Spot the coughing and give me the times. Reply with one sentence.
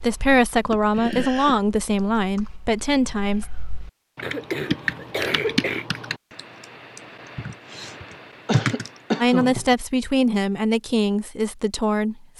The coughing can be heard from 0.7 to 1.6 s, from 4.2 to 5.8 s and from 8.4 to 9.6 s.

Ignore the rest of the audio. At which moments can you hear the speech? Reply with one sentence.
The speech can be heard from 0.0 to 3.5 s and from 9.2 to 12.3 s.